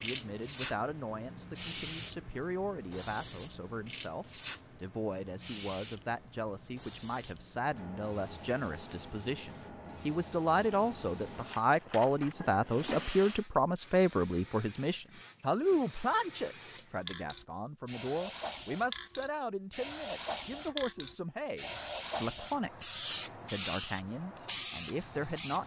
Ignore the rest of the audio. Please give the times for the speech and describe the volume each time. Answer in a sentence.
The speech can be heard from 0.0 to 25.6 s, getting louder then quieter.